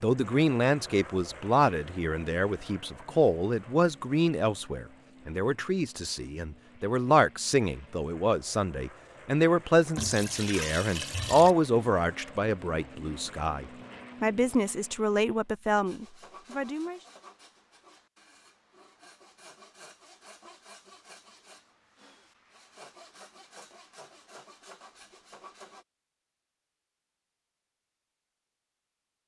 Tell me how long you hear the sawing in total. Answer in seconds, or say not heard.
10 s.